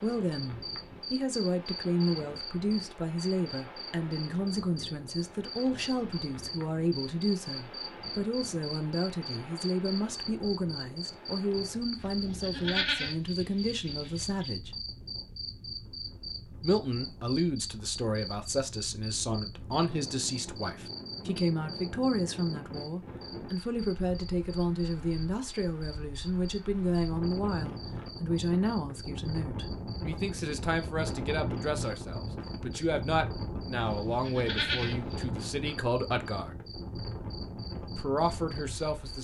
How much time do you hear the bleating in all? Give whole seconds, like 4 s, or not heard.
4 s.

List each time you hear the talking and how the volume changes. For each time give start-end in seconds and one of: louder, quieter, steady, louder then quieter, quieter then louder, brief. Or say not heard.
0.0-14.8 steady
16.6-36.6 steady
38.0-39.1 brief.